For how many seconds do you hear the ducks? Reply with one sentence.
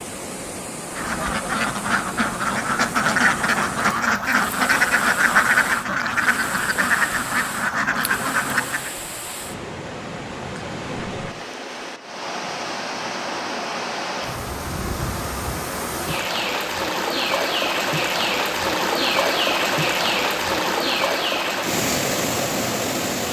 The ducks can be heard for 8 seconds in total.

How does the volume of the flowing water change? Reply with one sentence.
The loudness of the flowing water goes up.